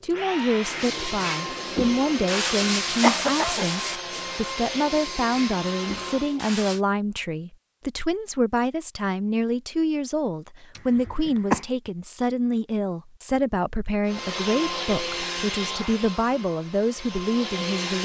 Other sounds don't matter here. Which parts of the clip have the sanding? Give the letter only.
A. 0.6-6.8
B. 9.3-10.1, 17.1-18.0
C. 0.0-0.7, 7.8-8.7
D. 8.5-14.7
A.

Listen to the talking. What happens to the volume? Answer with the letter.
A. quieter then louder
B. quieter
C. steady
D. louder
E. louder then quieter
C.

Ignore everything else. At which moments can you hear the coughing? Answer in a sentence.
You can hear the coughing from 3.0 to 3.7 s and from 10.8 to 11.7 s.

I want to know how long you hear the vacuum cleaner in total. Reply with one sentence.
The vacuum cleaner can be heard for 10 seconds in total.